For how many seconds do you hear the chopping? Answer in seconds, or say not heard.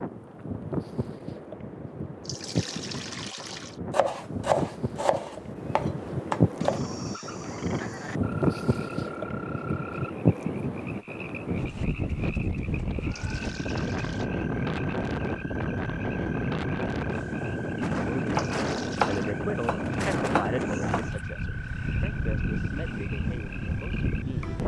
6 s.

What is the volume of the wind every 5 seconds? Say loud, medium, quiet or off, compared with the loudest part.
medium, loud, loud, loud, loud.